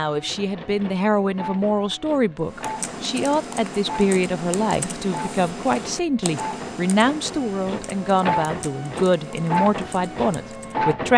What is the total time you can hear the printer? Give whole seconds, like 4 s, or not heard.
11 s.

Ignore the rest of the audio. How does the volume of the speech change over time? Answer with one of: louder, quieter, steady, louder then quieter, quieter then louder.
steady.